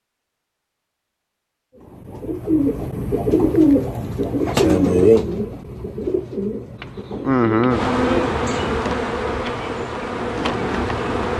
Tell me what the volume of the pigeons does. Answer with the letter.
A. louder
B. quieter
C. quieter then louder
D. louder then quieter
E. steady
B.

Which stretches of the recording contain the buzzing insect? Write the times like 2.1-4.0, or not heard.
6.8-11.3.